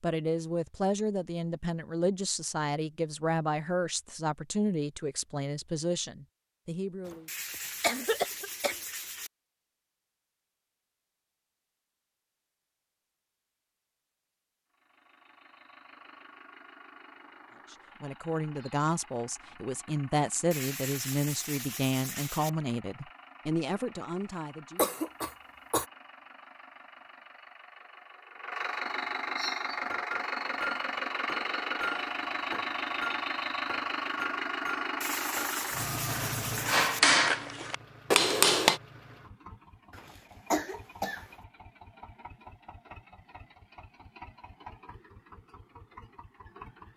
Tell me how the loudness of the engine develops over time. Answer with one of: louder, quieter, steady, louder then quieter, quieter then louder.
louder then quieter.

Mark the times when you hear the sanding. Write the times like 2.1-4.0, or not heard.
7.2-9.3, 20.5-22.5, 35.0-37.0.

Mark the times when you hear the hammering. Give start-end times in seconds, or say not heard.
29.9-38.8.